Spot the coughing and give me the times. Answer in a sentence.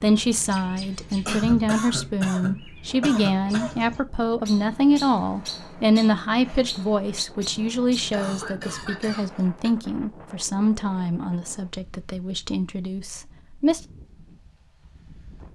You can hear the coughing from 1.2 to 3.9 s and from 8.1 to 9.8 s.